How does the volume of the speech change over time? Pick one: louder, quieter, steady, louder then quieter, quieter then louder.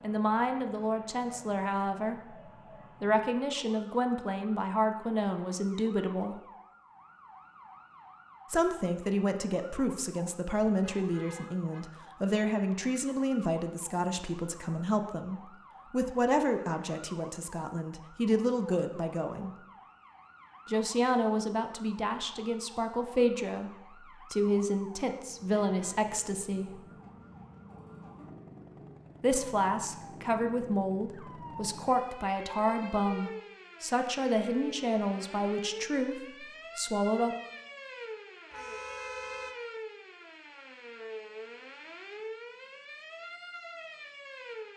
steady.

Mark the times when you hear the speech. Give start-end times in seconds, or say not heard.
0.0-6.4, 8.5-19.5, 20.6-26.8, 29.2-37.4.